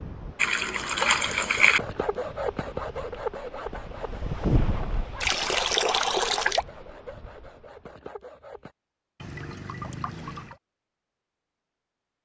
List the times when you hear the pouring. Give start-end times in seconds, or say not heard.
0.3-1.8, 5.2-6.7, 9.2-10.6.